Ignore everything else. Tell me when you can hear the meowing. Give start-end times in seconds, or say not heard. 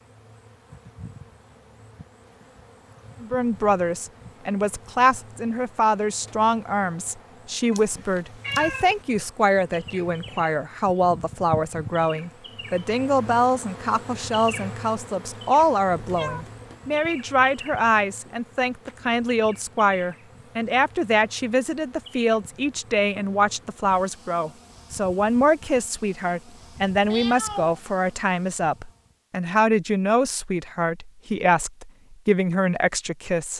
7.7-8.9, 15.9-16.6, 27.1-27.8.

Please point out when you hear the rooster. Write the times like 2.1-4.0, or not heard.
not heard.